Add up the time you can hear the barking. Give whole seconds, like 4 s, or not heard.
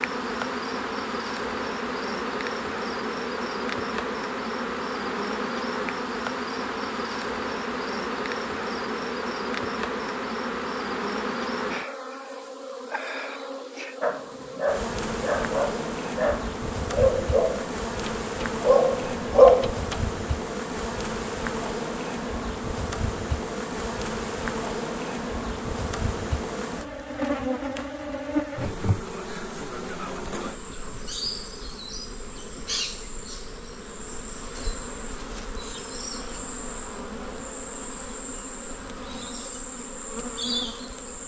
6 s.